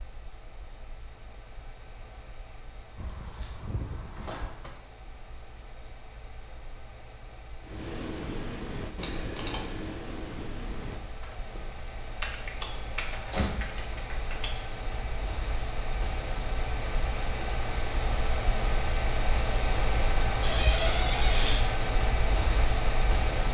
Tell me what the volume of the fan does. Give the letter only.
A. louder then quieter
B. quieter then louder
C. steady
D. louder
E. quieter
D.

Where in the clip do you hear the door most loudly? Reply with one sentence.
The loudest moment of the door is at 21 seconds.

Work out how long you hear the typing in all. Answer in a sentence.
You can hear the typing for 7 seconds altogether.